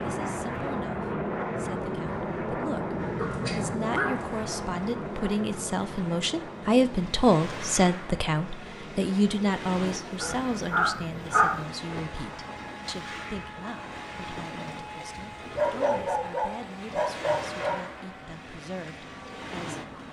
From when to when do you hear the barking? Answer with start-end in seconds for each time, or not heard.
3.1-4.3, 10.2-11.7, 15.6-17.9.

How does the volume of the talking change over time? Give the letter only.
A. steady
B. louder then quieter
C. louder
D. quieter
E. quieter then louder
B.